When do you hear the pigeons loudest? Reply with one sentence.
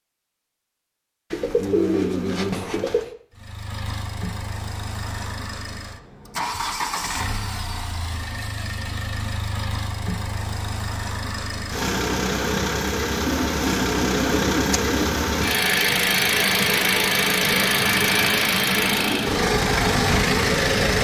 The loudest moment of the pigeons is at 2 seconds.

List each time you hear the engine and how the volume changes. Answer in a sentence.
The engine can be heard from 3.3 to 20.9 s, getting louder.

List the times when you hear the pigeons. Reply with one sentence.
The pigeons can be heard from 1.3 to 3.1 s and from 13.2 to 15.1 s.